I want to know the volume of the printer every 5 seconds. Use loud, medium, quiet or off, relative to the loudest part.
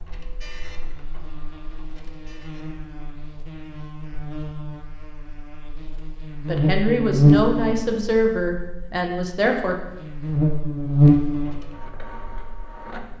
medium, off, loud.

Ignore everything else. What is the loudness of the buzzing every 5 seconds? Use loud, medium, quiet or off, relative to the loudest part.
quiet, loud, loud.